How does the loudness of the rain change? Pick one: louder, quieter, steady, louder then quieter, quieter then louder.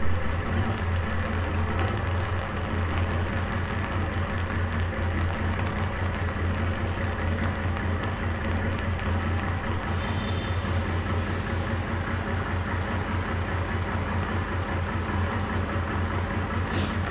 steady.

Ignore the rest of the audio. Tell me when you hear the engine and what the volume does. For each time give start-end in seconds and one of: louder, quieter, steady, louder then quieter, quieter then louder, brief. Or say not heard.
0.0-17.0 steady.